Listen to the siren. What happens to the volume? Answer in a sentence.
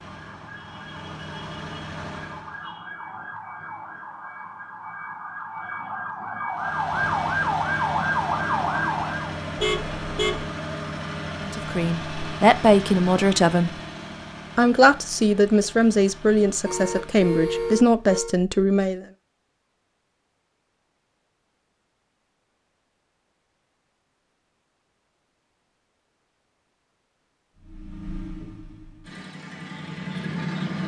The volume of the siren goes up.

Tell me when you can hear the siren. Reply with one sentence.
The siren can be heard from 0.0 to 9.4 s.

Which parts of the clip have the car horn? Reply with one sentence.
You can hear the car horn from 9.6 to 10.4 s and from 16.6 to 18.4 s.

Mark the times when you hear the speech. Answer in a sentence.
You can hear the speech from 11.4 to 13.7 s and from 14.6 to 19.1 s.